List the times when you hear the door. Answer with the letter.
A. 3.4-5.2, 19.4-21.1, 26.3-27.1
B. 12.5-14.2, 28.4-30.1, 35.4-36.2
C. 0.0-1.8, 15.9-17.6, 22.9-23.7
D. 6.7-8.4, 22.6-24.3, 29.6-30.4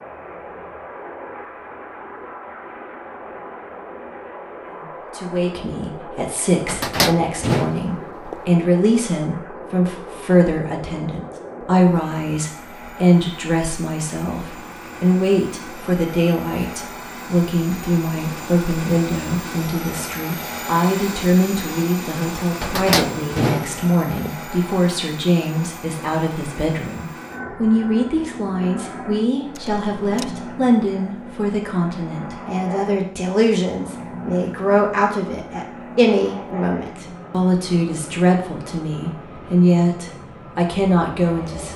D.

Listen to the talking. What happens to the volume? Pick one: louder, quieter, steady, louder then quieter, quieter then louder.
steady.